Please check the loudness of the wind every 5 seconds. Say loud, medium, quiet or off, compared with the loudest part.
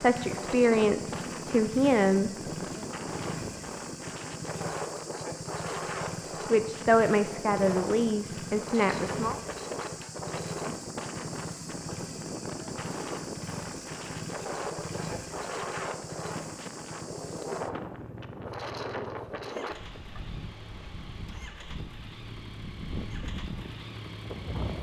loud, loud, loud, loud, medium.